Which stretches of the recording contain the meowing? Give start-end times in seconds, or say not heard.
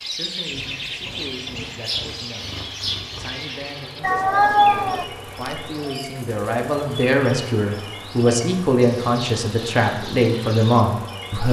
4.0-5.6.